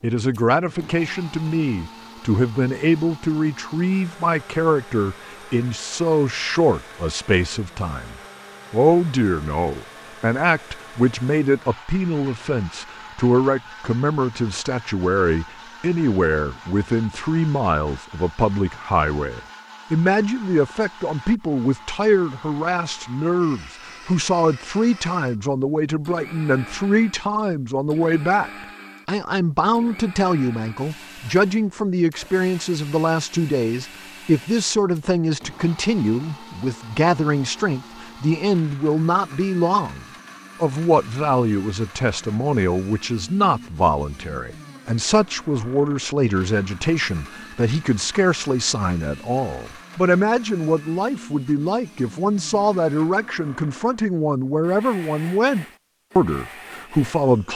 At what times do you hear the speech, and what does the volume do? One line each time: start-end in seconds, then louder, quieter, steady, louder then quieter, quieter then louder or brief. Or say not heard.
0.0-57.5 steady.